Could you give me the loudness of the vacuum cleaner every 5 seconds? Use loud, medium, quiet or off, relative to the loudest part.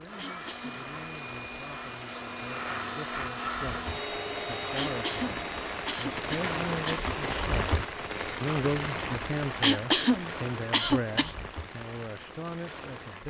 loud, loud, off.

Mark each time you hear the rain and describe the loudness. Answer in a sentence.
You can hear the rain from 0.0 to 13.2 s, getting louder then quieter.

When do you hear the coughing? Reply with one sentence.
You can hear the coughing from 0.1 to 0.8 s, from 4.8 to 7.1 s and from 9.6 to 11.3 s.